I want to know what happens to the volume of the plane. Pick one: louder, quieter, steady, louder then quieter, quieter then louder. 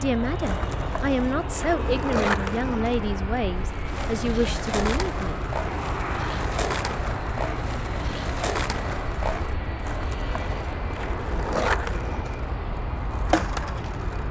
steady.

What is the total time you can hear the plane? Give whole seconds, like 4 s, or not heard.
14 s.